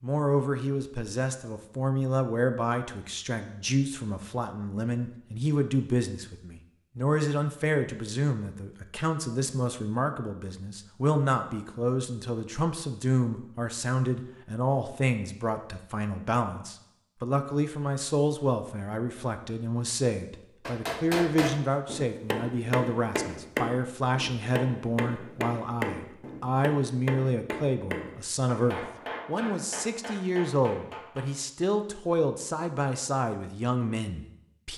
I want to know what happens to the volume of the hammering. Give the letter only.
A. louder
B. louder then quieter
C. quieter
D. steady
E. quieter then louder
C.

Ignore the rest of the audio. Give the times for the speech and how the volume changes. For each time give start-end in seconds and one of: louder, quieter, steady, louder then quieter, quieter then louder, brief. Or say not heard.
0.0-34.7 steady.